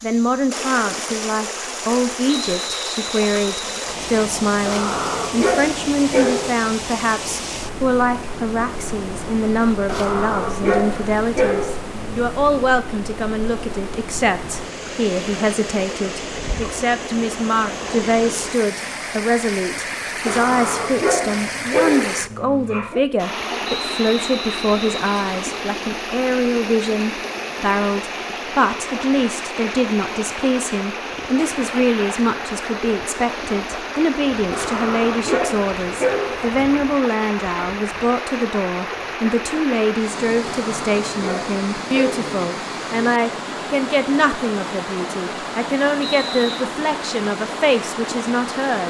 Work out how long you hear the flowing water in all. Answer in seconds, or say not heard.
49 s.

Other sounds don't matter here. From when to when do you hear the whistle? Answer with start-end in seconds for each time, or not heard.
2.2-4.2, 23.6-25.6, 46.0-46.6.